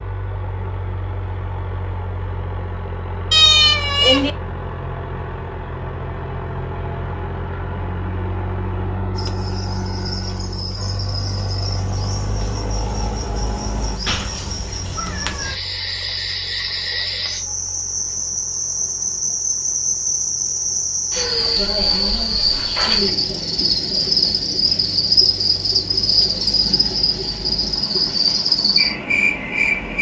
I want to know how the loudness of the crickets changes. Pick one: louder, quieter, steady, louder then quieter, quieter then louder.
louder.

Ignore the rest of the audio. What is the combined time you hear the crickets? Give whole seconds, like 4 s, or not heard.
21 s.